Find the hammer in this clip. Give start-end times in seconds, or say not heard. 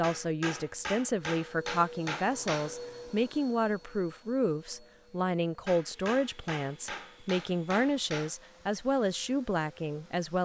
0.0-2.8, 5.7-8.3.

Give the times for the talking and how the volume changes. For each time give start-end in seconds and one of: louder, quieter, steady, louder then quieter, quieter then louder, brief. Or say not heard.
0.0-10.4 steady.